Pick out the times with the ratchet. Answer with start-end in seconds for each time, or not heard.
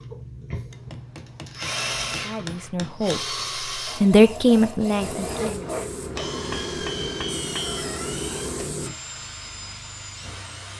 not heard.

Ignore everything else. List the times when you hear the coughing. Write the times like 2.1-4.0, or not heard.
not heard.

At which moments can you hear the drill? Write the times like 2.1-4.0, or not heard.
0.0-10.7.